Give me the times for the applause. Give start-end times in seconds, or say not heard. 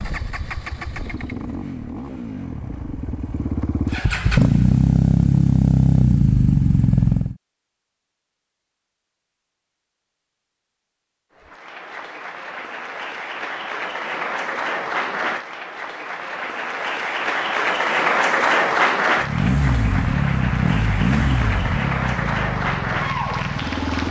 11.4-24.0.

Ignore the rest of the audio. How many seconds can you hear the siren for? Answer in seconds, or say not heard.
not heard.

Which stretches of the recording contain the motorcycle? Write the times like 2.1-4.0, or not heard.
0.0-7.3, 19.1-24.0.